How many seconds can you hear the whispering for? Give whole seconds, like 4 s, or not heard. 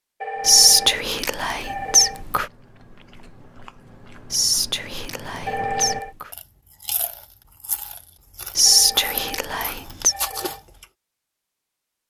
6 s.